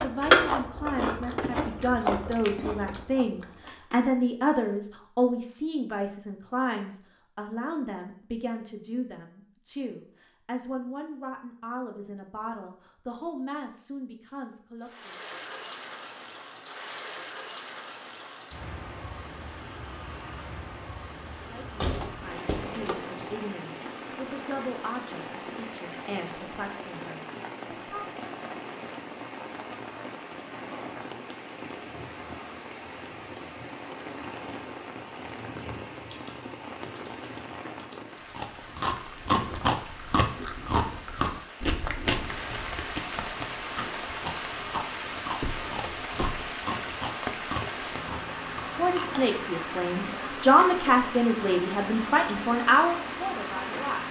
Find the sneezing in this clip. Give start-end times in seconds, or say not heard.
not heard.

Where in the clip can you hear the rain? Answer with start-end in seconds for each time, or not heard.
14.8-54.0.